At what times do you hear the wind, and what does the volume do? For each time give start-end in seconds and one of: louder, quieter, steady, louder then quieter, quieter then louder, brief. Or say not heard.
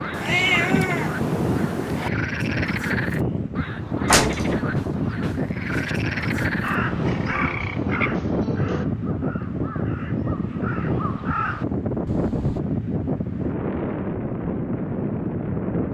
0.0-15.9 steady.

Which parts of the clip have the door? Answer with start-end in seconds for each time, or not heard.
4.0-5.9.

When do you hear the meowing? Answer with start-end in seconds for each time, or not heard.
0.1-2.1.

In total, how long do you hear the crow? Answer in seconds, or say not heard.
6 s.